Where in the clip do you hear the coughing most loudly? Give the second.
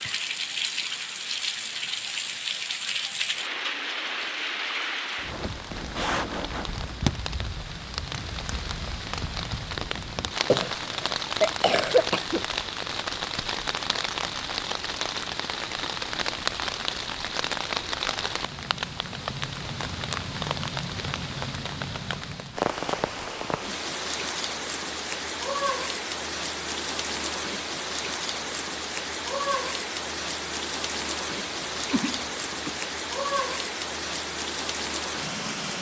12 s.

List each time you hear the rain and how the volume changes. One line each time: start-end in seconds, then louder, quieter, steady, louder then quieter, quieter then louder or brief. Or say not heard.
0.0-35.7 steady.